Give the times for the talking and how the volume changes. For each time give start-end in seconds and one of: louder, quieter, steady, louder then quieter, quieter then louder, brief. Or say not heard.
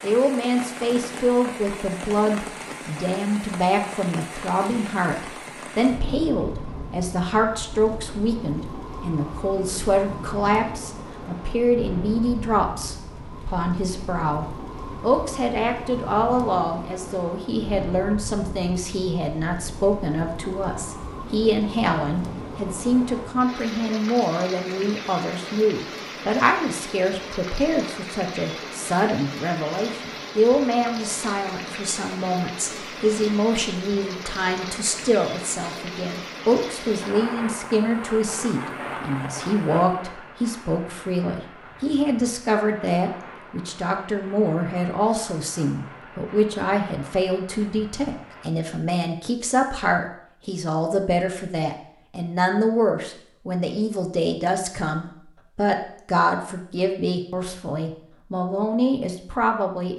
0.0-59.9 steady.